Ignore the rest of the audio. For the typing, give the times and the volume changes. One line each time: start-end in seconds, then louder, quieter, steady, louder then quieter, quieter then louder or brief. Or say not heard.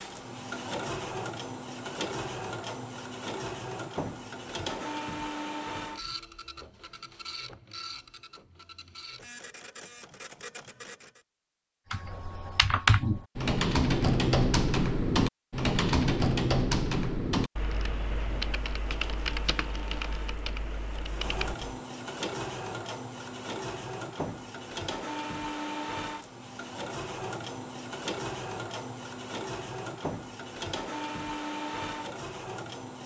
11.9-21.7 quieter.